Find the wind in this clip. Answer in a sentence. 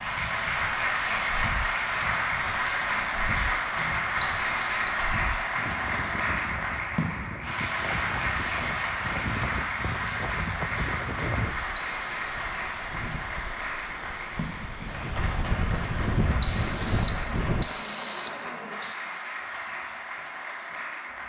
You can hear the wind from 0.0 to 17.6 s.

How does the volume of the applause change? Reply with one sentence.
The volume of the applause goes down.